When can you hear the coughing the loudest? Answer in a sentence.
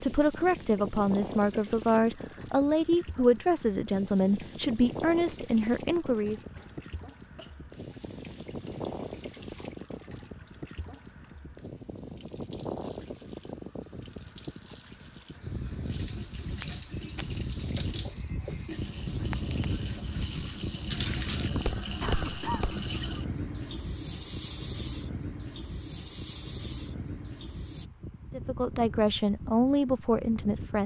The loudest moment of the coughing is at 22 seconds.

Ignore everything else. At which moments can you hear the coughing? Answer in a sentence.
You can hear the coughing from 6.5 to 7.8 s and from 22.0 to 22.8 s.